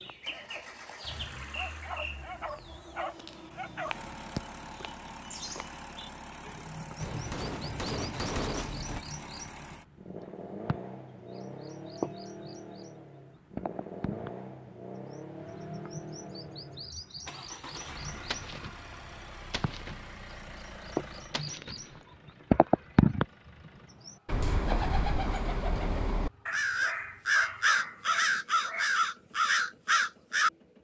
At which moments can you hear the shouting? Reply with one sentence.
You can't hear the shouting here.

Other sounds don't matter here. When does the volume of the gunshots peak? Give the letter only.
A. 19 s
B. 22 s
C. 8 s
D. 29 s
C.